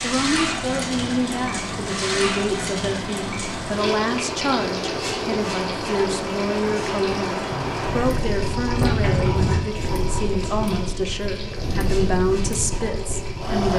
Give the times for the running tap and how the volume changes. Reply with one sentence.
The running tap can be heard from 0.0 to 13.7 s, getting quieter.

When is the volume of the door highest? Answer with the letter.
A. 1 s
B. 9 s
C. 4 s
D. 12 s
B.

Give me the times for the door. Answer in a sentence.
You can hear the door from 7.5 to 9.6 s.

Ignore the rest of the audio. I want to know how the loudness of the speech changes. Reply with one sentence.
The volume of the speech stays about the same.